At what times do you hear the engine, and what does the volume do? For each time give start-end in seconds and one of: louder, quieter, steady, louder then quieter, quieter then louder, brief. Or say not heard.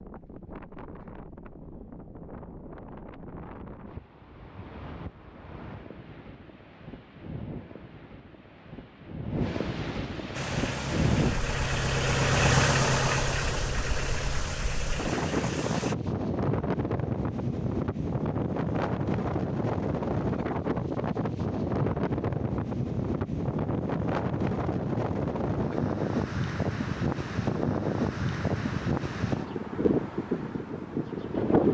10.3-15.9 louder then quieter.